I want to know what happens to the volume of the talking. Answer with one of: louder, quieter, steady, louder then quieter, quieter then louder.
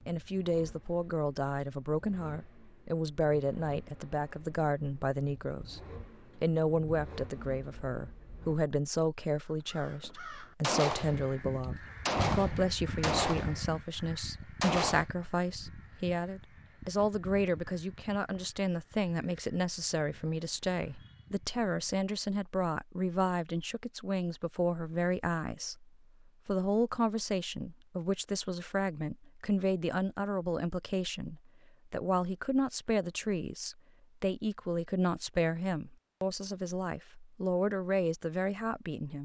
steady.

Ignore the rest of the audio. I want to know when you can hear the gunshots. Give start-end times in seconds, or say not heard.
10.6-15.1.